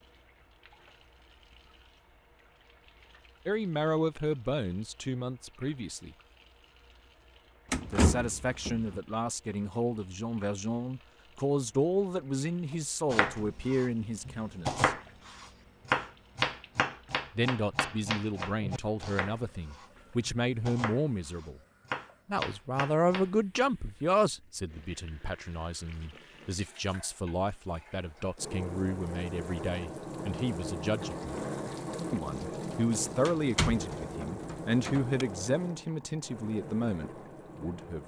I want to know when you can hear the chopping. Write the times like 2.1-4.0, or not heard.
13.1-23.3.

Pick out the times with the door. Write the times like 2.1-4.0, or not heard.
7.7-9.0, 33.2-35.2.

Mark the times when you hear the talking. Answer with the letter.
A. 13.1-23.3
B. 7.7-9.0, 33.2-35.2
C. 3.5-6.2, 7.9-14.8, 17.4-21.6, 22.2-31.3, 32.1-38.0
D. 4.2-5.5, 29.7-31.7
C.